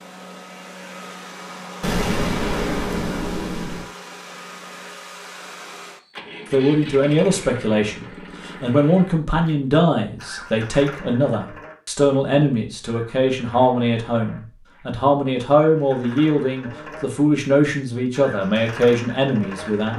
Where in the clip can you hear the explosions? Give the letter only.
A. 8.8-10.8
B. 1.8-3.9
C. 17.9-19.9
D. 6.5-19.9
B.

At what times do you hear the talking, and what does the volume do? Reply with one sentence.
You can hear the talking from 6.5 to 19.9 s, at a steady volume.